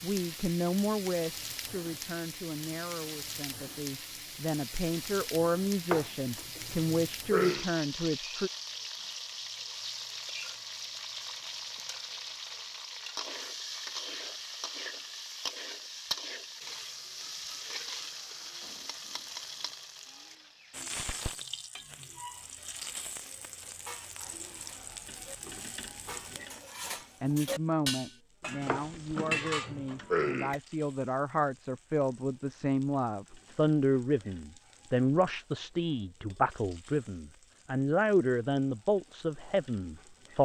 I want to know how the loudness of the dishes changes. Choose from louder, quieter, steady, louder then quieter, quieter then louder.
louder.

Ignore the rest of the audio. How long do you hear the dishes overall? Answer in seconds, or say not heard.
7 s.